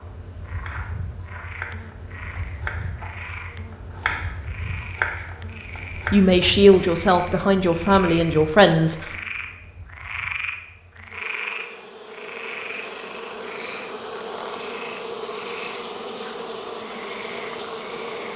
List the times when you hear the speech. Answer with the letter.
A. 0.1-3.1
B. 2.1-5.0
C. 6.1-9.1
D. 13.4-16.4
C.